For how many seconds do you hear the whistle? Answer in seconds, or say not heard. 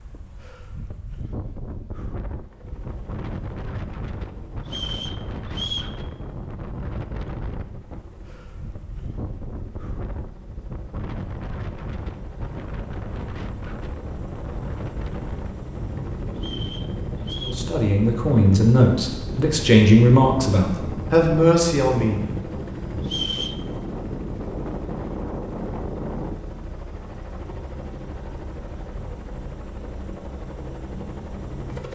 3 s.